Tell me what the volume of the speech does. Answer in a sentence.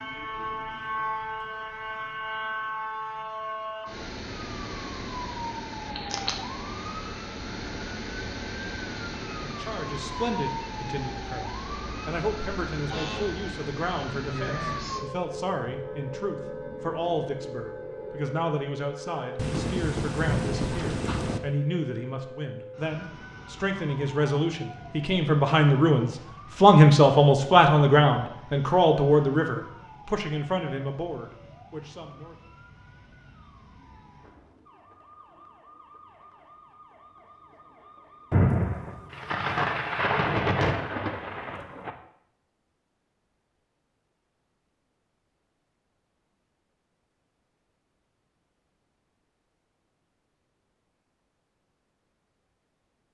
The loudness of the speech goes up.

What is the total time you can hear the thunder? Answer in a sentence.
You can hear the thunder for 6 seconds altogether.